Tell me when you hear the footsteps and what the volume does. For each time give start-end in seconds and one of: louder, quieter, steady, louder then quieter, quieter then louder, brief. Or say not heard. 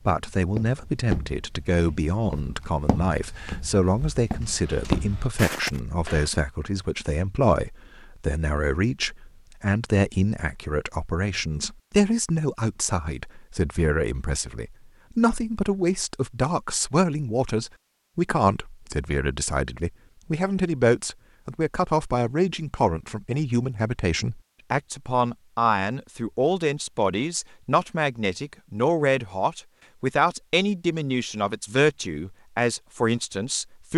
0.1-6.3 quieter then louder.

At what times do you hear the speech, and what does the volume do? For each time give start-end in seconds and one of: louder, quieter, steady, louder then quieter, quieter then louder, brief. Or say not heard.
0.1-33.9 steady.